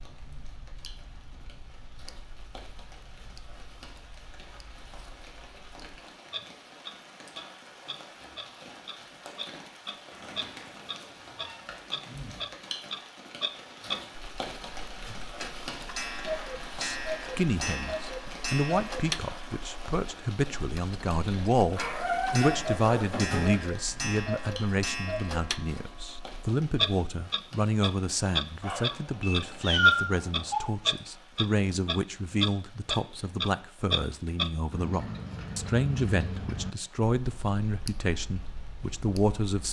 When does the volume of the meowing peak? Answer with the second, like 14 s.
30 s.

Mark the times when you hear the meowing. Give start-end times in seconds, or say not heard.
10.1-11.6, 21.8-23.6, 28.6-30.6.